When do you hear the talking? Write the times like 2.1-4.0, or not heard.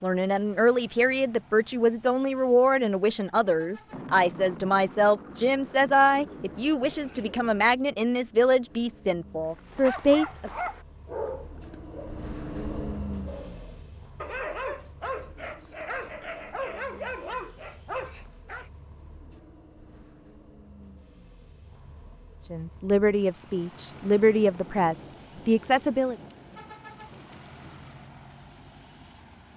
0.0-10.5, 22.5-26.1.